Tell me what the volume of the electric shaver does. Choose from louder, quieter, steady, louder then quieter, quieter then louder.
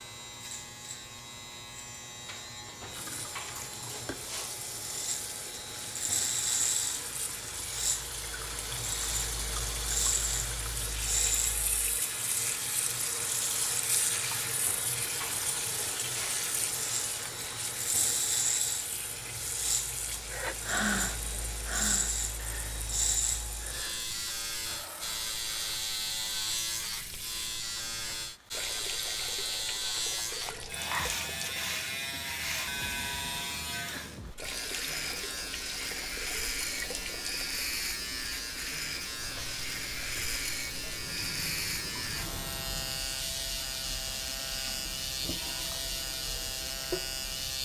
steady.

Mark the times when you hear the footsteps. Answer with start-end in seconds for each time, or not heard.
not heard.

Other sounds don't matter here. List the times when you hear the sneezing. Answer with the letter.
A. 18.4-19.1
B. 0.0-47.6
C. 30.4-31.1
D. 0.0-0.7
C.